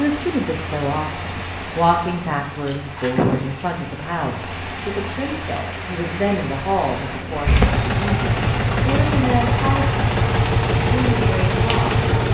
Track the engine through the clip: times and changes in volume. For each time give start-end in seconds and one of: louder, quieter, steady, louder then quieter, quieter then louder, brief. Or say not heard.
7.5-12.2 steady.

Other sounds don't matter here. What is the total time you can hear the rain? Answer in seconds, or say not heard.
12 s.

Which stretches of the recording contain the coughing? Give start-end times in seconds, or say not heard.
2.4-3.1.